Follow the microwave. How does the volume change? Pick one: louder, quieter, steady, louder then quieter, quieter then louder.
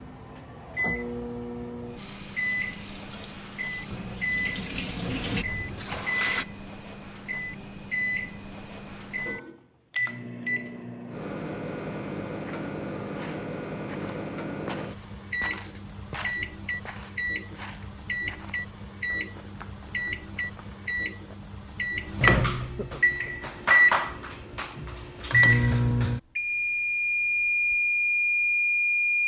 louder.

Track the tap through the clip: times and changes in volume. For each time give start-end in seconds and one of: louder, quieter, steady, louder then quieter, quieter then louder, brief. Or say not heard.
1.9-6.5 louder.